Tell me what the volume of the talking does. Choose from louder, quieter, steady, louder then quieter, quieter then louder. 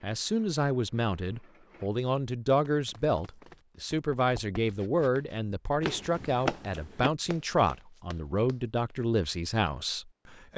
steady.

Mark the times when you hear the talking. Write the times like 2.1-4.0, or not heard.
0.0-10.5.